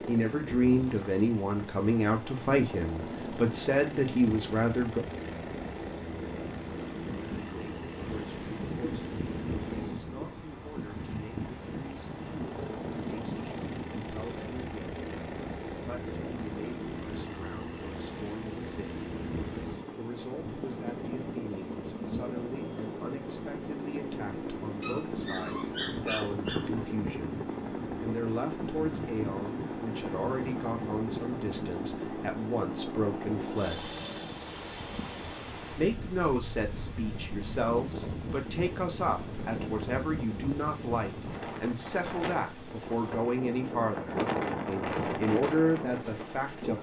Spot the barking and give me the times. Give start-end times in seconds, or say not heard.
24.8-26.9.